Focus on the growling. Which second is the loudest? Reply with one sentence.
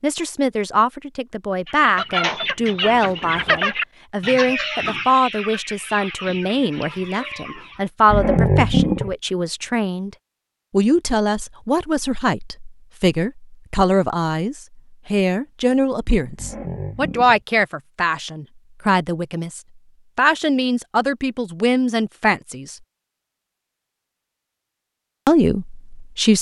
The volume of the growling peaks at 9 seconds.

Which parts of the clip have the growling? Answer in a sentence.
The growling can be heard from 8.1 to 9.2 s and from 16.4 to 17.4 s.